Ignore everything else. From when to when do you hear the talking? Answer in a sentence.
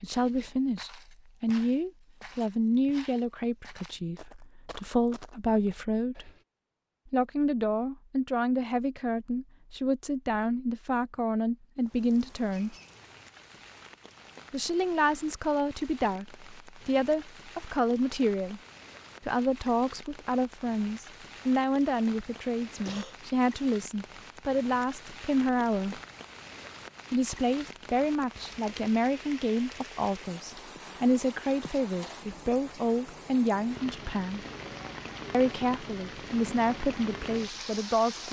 The talking can be heard from 0.0 to 6.3 s, from 7.1 to 12.8 s, from 14.5 to 18.6 s, from 19.2 to 26.0 s, from 27.1 to 34.4 s and from 35.3 to 38.2 s.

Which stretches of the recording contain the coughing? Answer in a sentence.
You can hear the coughing from 22.4 to 23.1 s.